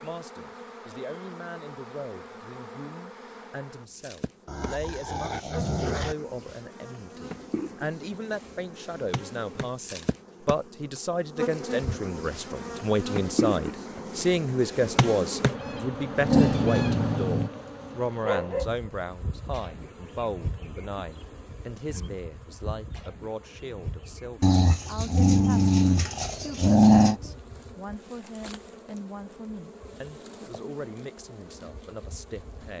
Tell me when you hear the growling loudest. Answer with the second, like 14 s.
27 s.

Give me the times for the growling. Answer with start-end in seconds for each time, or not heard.
4.5-6.2, 16.1-17.5, 24.4-27.2.